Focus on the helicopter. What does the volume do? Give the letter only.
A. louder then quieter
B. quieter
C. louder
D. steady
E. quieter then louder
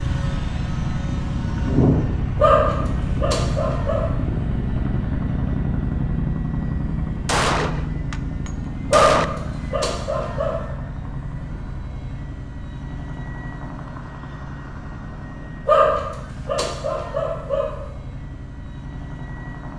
B.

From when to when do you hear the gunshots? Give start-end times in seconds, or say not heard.
7.2-9.2.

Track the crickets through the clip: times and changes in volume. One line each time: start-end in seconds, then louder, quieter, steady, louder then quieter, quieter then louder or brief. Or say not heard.
not heard.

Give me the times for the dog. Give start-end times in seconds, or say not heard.
2.4-4.1, 8.9-10.7, 15.7-17.8.